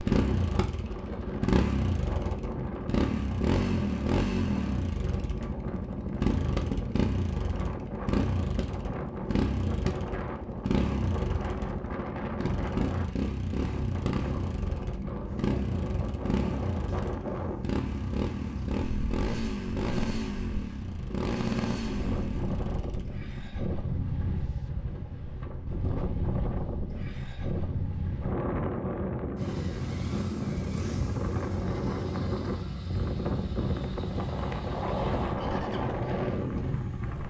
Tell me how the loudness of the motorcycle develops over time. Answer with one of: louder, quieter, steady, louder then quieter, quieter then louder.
quieter.